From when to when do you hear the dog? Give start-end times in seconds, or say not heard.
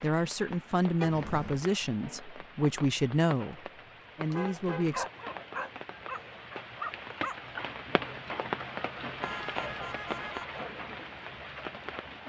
4.9-7.3.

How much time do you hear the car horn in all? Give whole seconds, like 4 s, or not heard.
3 s.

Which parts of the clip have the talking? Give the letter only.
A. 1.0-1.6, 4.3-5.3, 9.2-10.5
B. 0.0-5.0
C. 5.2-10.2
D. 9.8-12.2
B.